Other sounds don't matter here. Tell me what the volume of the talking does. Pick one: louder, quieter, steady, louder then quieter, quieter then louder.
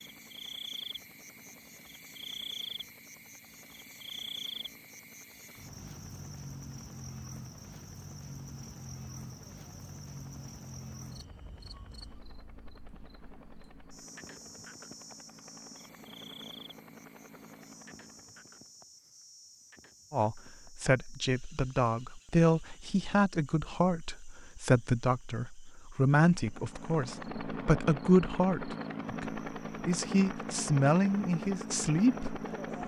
steady.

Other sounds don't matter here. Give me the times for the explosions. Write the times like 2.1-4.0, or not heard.
not heard.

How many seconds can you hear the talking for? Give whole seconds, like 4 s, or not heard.
13 s.